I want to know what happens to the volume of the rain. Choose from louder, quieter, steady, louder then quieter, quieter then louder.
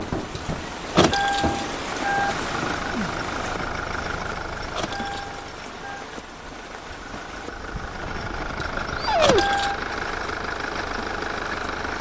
quieter.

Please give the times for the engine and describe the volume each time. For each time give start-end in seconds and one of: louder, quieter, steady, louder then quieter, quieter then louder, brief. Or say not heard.
0.0-11.9 quieter then louder.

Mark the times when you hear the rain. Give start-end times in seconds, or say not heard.
0.0-11.9.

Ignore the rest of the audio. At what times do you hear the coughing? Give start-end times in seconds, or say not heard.
not heard.